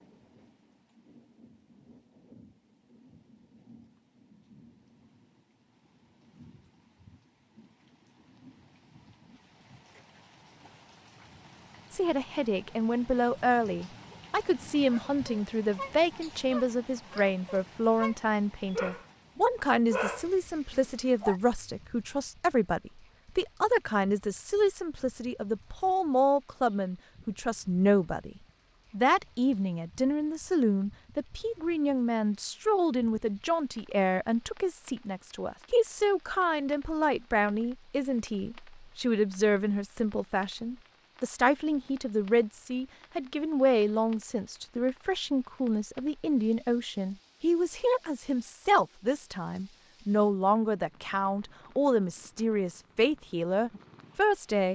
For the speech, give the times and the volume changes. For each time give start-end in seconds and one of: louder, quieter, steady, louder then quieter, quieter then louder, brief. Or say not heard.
11.9-54.6 steady.